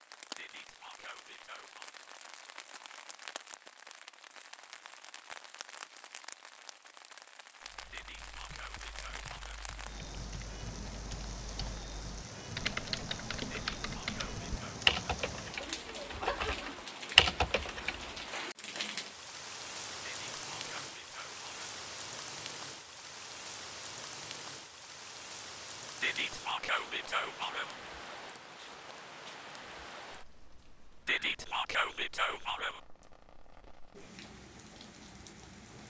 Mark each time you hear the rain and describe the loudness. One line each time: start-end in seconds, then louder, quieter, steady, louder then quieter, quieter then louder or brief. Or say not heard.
0.0-35.8 louder then quieter.